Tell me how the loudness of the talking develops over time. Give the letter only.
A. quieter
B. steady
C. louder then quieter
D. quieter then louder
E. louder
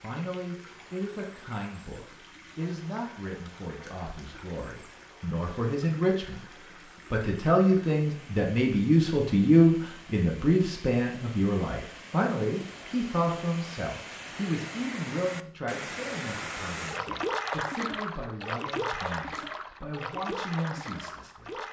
C.